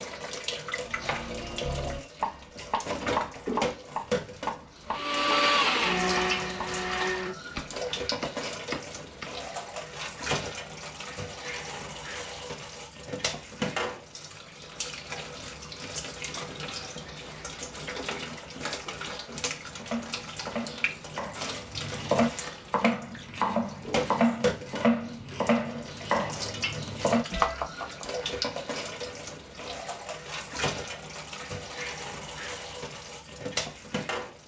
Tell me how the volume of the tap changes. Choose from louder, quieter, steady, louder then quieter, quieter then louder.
steady.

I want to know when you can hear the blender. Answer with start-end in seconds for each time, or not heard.
4.9-7.3.